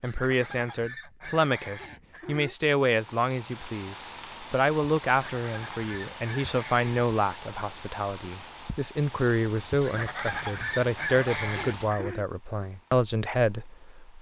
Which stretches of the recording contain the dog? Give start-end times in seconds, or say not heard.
not heard.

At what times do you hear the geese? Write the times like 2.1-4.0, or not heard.
0.0-2.5, 5.0-7.1, 9.8-12.2.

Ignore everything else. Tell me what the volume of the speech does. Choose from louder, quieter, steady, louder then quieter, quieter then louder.
steady.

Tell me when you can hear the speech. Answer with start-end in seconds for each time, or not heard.
0.0-14.1.